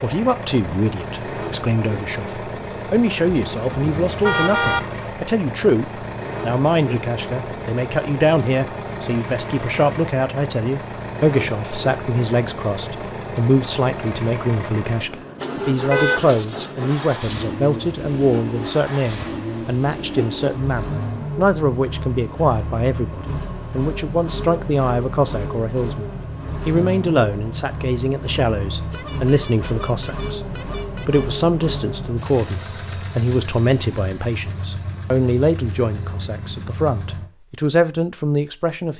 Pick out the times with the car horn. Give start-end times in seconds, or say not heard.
3.2-4.8, 15.9-17.4, 28.7-31.4.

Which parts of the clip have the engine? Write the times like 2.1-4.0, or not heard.
0.0-37.3.